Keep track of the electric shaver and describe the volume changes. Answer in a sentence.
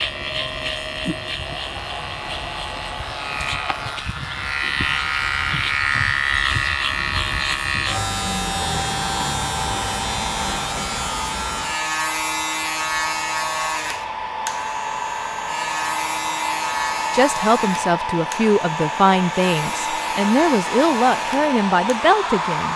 The loudness of the electric shaver goes up, then down.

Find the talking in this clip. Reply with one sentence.
You can hear the talking from 17.1 to 22.7 s.